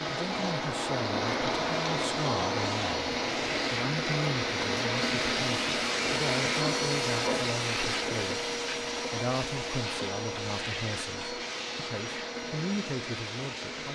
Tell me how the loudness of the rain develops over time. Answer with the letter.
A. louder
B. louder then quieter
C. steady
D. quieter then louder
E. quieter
E.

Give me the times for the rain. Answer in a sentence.
You can hear the rain from 0.0 to 13.8 s.